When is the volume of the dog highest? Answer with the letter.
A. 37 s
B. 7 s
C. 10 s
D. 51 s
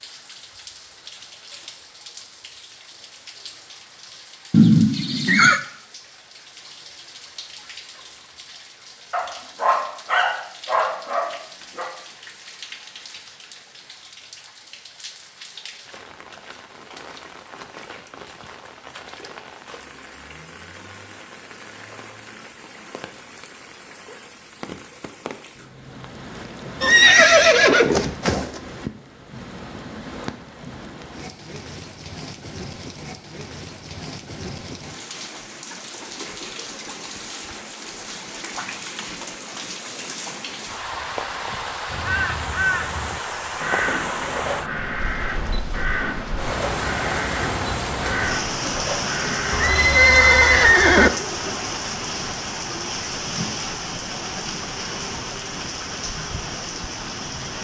C.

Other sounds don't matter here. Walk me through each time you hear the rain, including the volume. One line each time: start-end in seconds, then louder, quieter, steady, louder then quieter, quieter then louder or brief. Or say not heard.
0.0-57.5 louder.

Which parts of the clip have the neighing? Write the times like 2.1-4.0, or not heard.
4.5-5.6, 26.8-28.6, 49.5-51.1.